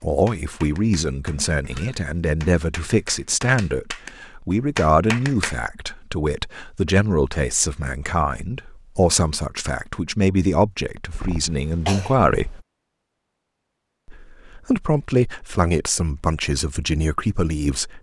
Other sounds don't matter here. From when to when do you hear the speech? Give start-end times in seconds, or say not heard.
0.0-12.6, 14.1-17.9.